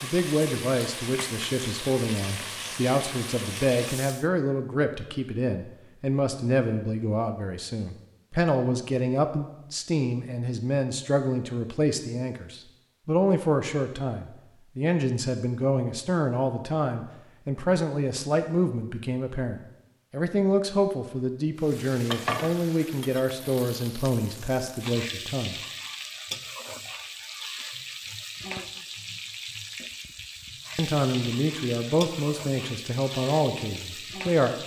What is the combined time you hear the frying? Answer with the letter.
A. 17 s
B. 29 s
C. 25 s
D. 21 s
A.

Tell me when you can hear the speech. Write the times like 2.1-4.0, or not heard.
0.0-25.6, 30.8-34.5.